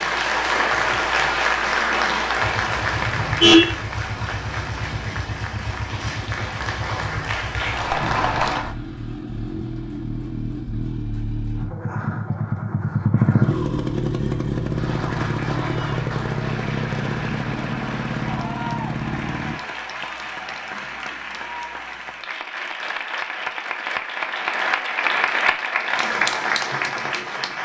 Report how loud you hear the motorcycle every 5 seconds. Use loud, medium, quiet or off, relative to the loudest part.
medium, medium, loud, loud, off, off.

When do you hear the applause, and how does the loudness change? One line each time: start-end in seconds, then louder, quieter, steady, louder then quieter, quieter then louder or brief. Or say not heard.
0.0-8.8 quieter then louder
14.7-27.6 louder.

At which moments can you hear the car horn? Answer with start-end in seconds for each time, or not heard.
3.0-3.7.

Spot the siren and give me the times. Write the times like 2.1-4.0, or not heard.
not heard.